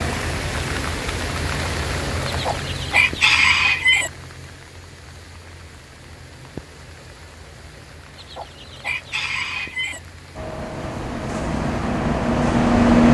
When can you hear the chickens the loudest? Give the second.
3 s.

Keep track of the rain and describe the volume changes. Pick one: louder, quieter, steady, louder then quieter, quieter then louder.
quieter.